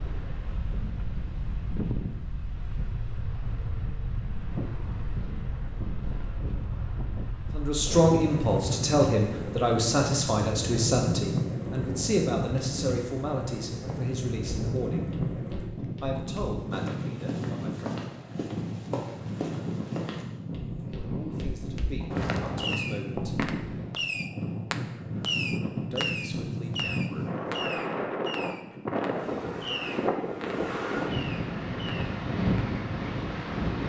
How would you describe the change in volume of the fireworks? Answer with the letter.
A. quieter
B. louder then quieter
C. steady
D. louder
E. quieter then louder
A.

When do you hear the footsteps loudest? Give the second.
22 s.